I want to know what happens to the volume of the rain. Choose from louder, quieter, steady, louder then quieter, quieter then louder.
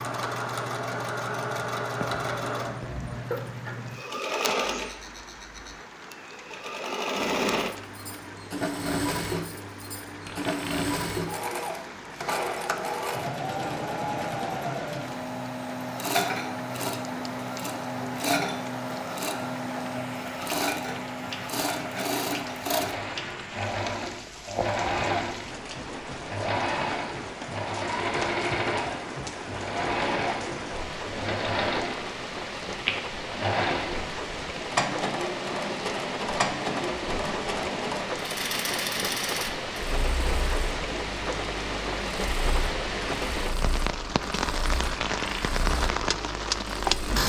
louder.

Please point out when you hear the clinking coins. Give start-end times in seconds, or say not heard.
10.2-10.9, 44.8-45.5.